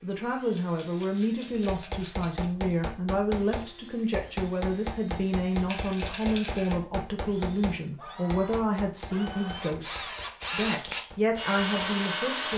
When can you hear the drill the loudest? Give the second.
12 s.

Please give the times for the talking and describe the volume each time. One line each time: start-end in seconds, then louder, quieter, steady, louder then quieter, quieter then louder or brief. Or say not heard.
0.0-12.5 steady.